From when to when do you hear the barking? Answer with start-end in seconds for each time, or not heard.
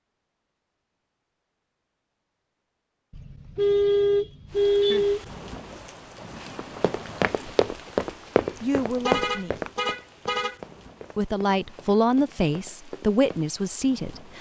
not heard.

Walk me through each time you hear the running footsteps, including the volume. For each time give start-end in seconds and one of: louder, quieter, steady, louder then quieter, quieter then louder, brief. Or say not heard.
6.5-13.4 quieter.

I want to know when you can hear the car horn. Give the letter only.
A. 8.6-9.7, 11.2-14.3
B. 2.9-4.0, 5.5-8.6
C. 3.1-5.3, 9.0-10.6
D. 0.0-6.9
C.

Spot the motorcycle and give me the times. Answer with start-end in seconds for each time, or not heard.
not heard.